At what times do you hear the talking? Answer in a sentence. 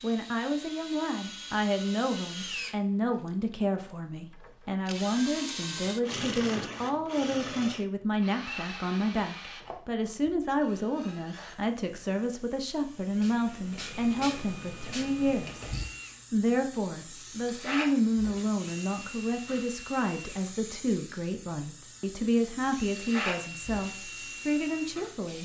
You can hear the talking from 0.0 to 15.7 s and from 16.3 to 25.3 s.